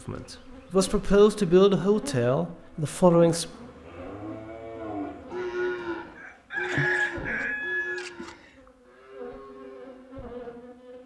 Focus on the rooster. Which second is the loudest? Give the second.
7 s.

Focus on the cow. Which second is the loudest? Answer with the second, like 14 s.
6 s.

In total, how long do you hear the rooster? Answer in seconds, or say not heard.
3 s.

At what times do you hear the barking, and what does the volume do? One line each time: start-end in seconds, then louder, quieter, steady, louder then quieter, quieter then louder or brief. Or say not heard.
not heard.